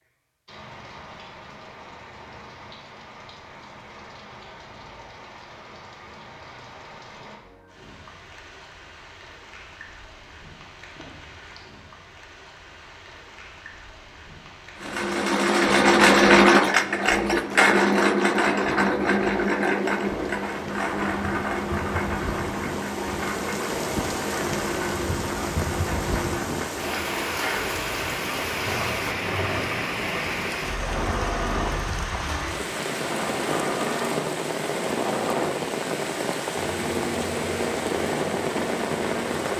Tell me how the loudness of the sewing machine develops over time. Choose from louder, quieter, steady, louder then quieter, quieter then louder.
quieter.